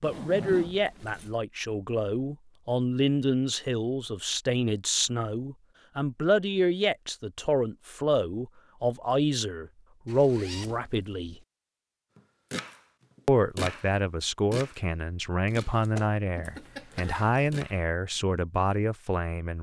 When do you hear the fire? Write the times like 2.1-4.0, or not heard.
not heard.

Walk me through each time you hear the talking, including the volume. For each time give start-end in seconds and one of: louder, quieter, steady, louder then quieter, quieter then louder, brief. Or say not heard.
0.0-11.3 steady
13.2-19.5 steady.